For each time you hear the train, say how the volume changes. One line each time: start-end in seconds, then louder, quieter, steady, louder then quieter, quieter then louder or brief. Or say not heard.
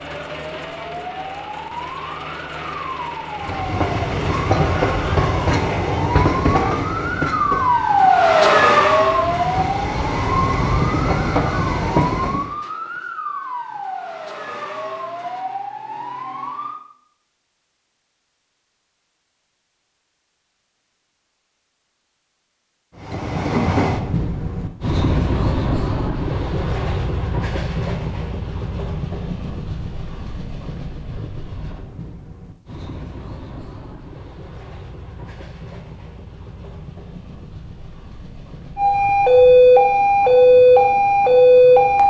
3.4-12.6 quieter then louder
22.9-42.0 quieter.